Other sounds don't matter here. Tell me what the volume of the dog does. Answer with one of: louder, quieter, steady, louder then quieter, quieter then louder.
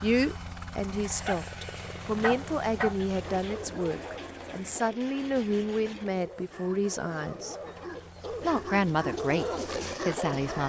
quieter then louder.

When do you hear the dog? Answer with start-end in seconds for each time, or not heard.
1.2-10.6.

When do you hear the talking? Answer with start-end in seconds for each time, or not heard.
0.0-7.5, 8.4-10.6.